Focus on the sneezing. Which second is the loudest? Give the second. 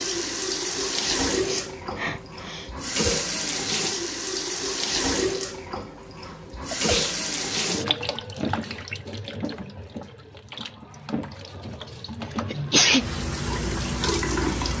13 s.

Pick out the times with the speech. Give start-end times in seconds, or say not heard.
not heard.